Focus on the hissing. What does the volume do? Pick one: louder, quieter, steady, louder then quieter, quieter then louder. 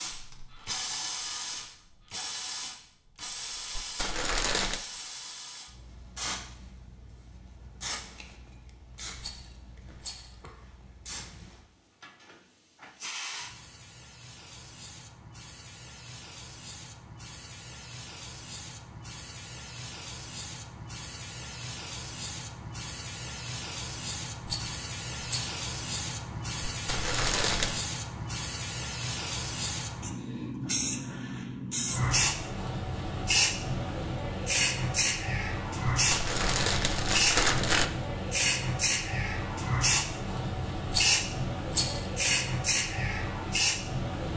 quieter then louder.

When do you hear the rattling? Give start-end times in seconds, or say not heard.
9.2-10.3, 24.4-25.6, 40.9-42.1.